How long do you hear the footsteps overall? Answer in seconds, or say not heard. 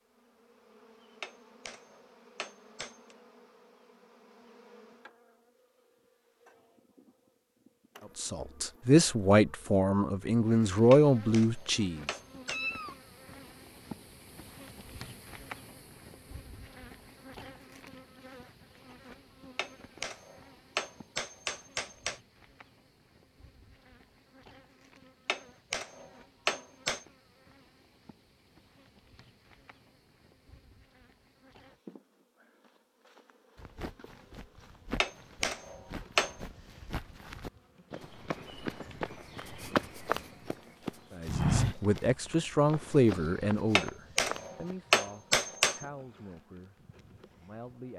11 s.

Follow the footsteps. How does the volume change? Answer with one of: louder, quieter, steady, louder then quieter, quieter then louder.
louder then quieter.